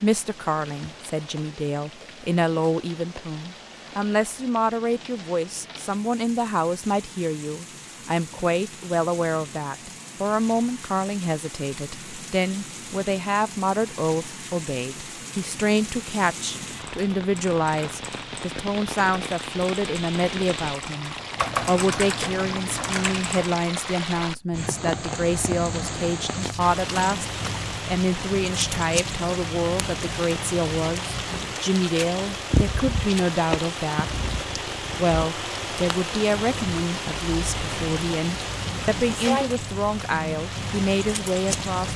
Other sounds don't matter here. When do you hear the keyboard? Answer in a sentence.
You can hear the keyboard from 16.8 to 23.6 s.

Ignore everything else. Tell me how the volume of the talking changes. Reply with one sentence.
The loudness of the talking stays about the same.